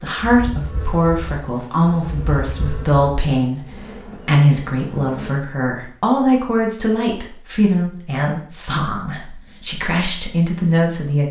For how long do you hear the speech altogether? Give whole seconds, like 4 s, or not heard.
11 s.